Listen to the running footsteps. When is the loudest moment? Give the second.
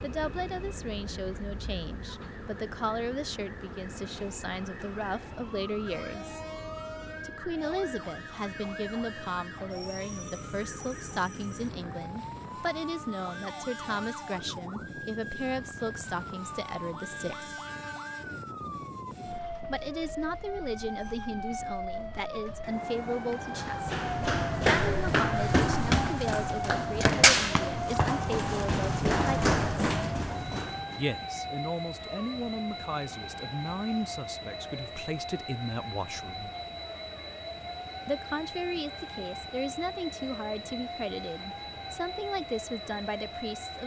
27 s.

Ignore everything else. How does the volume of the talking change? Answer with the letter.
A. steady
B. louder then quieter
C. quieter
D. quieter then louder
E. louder
A.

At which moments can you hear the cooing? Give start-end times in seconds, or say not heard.
not heard.